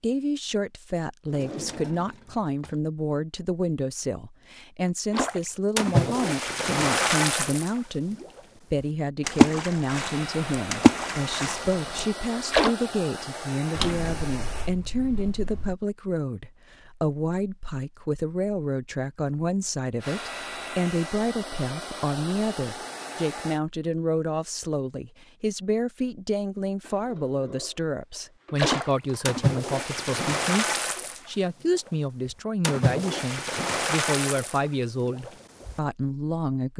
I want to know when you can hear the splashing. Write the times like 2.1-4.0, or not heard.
5.1-12.8, 28.6-35.8.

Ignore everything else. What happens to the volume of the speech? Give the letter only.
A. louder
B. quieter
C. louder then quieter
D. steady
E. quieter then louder
D.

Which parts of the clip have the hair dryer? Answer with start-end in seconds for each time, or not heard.
9.8-14.7, 19.9-23.6.